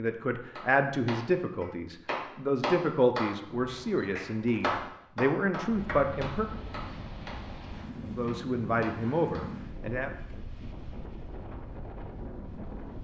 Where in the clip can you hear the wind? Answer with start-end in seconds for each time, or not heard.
5.5-12.9.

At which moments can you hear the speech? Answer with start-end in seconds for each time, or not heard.
0.0-6.5, 8.2-10.1.